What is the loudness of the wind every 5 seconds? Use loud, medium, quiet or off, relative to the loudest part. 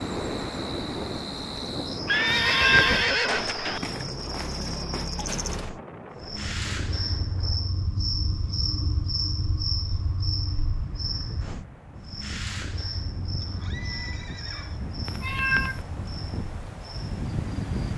loud, medium, medium, loud.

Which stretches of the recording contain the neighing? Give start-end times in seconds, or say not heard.
2.0-3.8, 13.4-14.8.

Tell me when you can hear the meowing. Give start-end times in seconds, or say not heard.
2.2-3.0, 15.1-15.8.